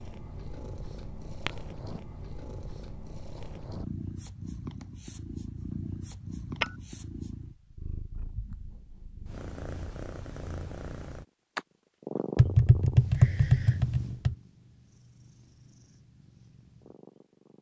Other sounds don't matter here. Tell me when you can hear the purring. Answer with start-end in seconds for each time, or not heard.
0.0-17.5.